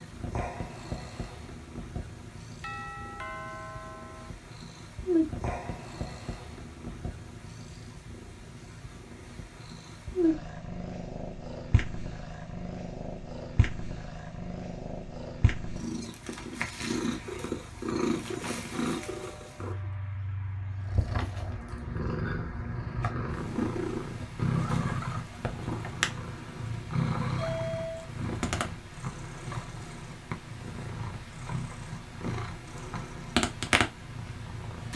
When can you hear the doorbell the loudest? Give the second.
28 s.